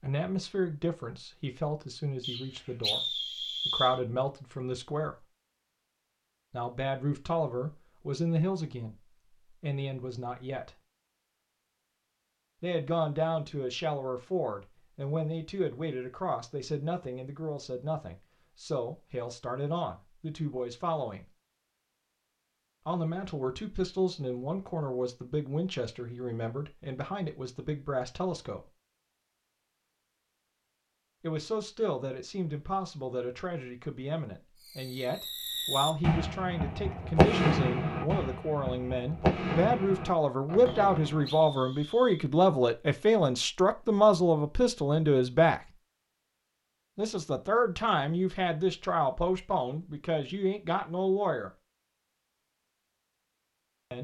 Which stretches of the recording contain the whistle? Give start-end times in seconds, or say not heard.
2.2-4.0, 40.6-42.2.